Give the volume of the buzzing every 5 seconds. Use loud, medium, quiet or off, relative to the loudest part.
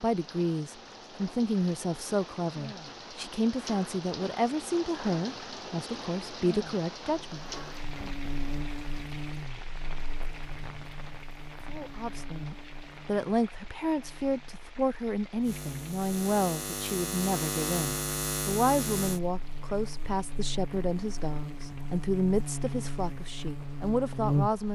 off, medium, quiet, loud, loud.